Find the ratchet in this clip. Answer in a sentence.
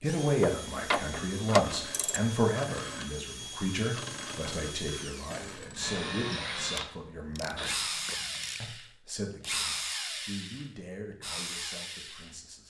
The ratchet can be heard from 0.2 to 2.2 s and from 6.8 to 8.8 s.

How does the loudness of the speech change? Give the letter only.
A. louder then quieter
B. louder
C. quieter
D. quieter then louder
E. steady
C.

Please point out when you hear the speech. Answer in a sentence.
The speech can be heard from 0.0 to 7.8 s and from 8.6 to 12.6 s.